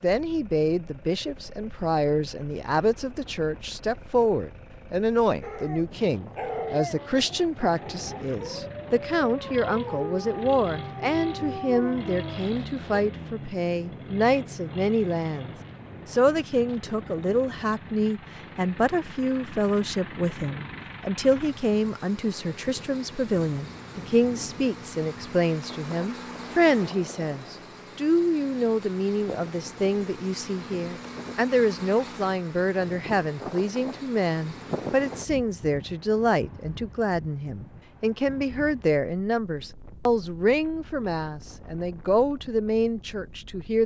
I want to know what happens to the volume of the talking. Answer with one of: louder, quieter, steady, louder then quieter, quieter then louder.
steady.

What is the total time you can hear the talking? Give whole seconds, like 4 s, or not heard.
44 s.